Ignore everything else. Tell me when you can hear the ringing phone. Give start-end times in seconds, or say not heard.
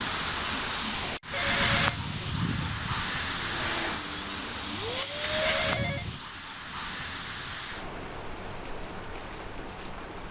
1.3-3.1, 5.4-6.2.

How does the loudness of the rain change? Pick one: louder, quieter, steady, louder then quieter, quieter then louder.
quieter.